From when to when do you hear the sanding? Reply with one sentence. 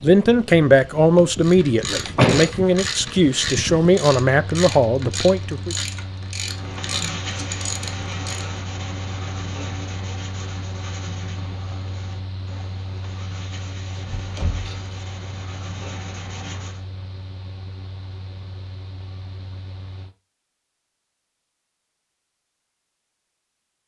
You can hear the sanding from 6.5 to 16.8 s.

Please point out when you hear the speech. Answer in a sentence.
You can hear the speech from 0.0 to 5.8 s.